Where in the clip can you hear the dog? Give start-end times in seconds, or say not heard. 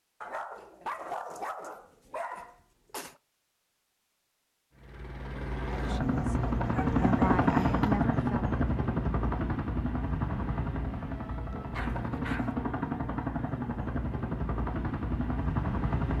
0.2-3.1, 5.7-8.1, 11.7-12.6.